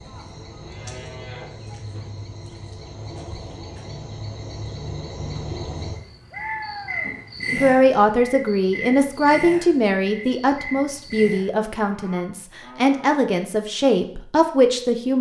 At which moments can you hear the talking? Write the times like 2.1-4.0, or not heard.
7.5-15.1.